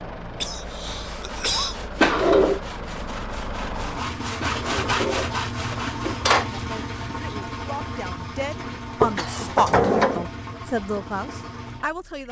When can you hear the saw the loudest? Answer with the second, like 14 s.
5 s.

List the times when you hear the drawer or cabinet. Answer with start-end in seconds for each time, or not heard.
2.0-2.6, 4.4-6.5, 9.0-10.2.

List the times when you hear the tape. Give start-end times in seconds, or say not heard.
not heard.